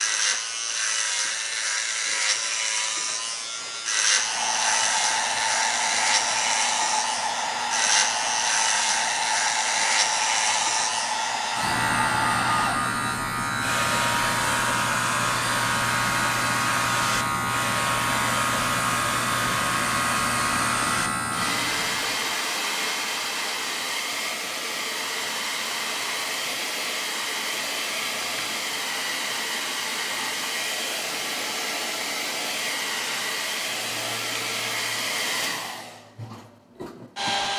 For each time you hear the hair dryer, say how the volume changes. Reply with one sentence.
You can hear the hair dryer from 4.1 to 37.5 s, at a steady volume.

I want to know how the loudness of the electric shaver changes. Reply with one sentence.
The volume of the electric shaver stays about the same.